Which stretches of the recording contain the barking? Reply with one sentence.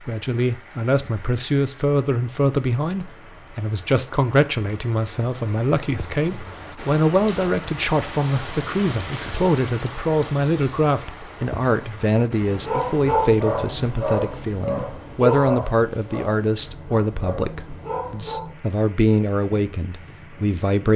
The barking can be heard from 12.4 to 18.5 s.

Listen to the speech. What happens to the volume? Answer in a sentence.
The loudness of the speech stays about the same.